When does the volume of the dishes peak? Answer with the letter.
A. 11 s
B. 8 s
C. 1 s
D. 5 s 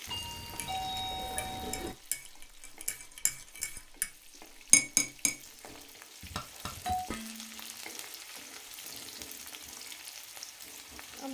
D.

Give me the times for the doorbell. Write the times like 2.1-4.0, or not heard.
0.1-1.9, 6.2-7.1.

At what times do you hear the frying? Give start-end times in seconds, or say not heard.
0.0-11.3.